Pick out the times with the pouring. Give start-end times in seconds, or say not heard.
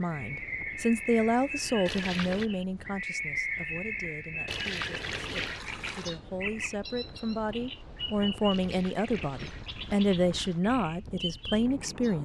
1.9-2.5, 4.5-6.2, 8.5-10.6.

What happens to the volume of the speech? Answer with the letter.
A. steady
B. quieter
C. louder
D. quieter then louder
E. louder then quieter
D.